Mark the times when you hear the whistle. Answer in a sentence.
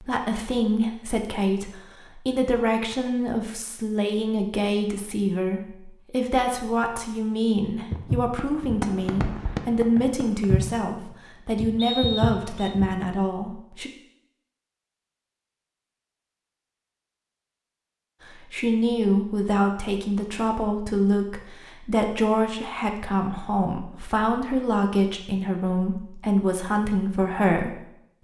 The whistle can be heard from 11.8 to 12.8 s.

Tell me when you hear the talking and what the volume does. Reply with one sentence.
The talking can be heard from 0.0 to 13.9 s, at a steady volume; and from 18.4 to 27.9 s, at a steady volume.